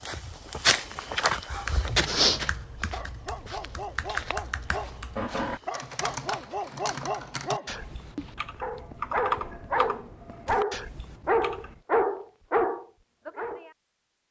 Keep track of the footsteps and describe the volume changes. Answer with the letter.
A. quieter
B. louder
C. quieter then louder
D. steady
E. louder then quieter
A.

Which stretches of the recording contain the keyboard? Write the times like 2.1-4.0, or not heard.
1.5-11.8.